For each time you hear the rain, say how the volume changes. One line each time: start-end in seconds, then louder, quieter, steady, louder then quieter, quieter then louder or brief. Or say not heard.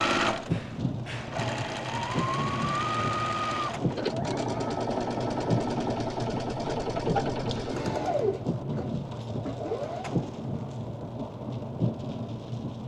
0.2-12.8 steady.